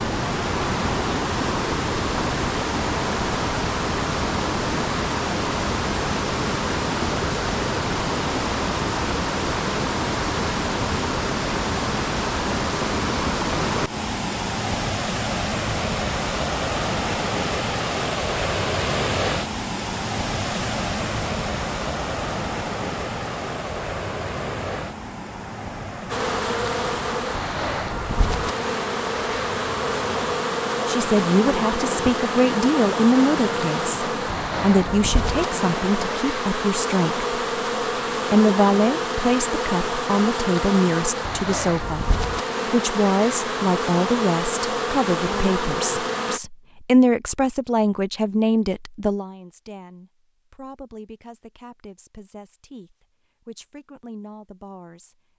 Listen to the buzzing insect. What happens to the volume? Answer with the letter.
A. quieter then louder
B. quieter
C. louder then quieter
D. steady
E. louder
D.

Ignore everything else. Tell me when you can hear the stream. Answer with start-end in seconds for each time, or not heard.
0.0-36.2.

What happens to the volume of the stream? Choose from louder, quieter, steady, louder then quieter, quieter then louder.
quieter.